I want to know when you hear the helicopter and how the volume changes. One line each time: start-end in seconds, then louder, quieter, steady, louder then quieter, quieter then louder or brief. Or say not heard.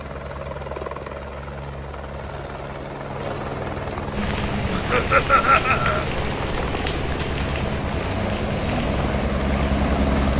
0.0-10.3 louder.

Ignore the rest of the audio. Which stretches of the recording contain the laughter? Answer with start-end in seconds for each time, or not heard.
4.7-6.0.